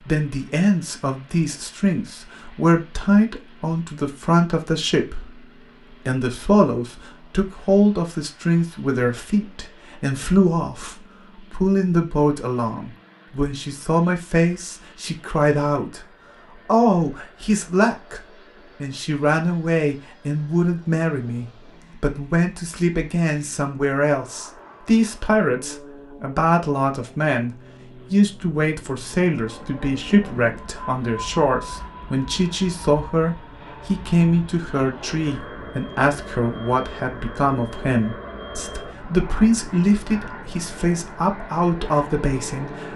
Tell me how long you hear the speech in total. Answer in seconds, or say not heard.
41 s.